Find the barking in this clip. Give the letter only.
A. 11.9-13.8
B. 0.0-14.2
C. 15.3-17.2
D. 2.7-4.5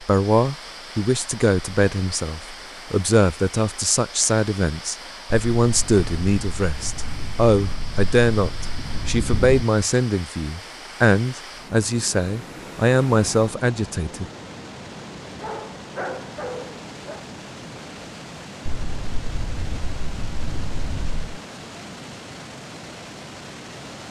C.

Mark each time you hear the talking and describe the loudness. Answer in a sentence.
You can hear the talking from 0.0 to 14.2 s, at a steady volume.